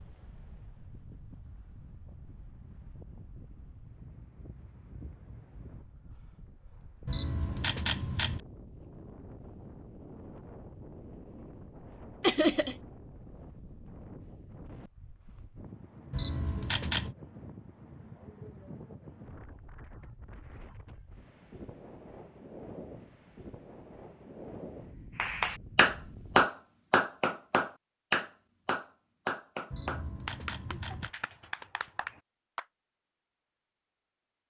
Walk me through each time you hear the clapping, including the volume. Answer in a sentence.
You can hear the clapping from 25.1 to 32.6 s, getting quieter.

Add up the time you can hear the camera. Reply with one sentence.
You can hear the camera for 4 seconds altogether.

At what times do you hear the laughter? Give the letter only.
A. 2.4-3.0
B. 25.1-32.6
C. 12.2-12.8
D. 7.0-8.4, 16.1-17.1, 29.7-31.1
C.